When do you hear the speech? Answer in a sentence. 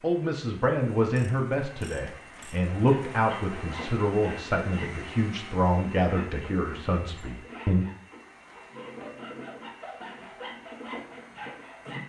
You can hear the speech from 0.0 to 7.8 s.